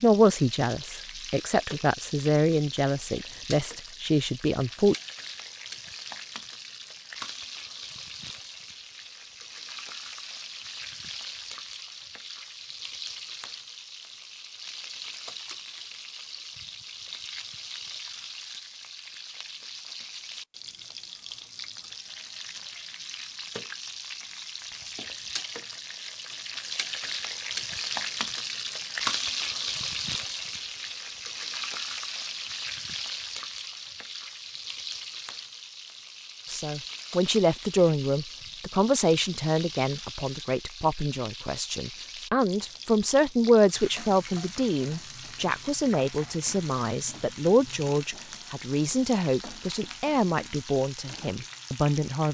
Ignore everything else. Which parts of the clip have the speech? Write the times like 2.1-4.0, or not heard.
0.0-5.0, 36.5-52.2.